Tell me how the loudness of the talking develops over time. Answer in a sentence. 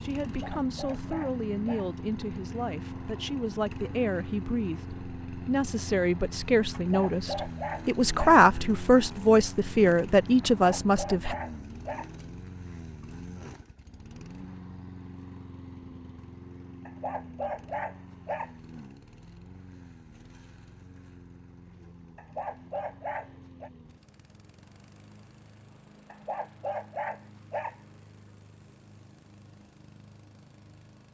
The volume of the talking goes up.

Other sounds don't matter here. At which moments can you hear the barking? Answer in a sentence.
You can hear the barking from 0.2 to 1.9 s, from 6.7 to 8.4 s, from 10.6 to 12.1 s, from 16.9 to 18.5 s, from 22.1 to 23.7 s and from 26.1 to 27.8 s.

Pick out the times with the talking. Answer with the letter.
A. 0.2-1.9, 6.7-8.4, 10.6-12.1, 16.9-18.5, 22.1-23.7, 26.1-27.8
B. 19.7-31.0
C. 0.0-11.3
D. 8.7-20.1
C.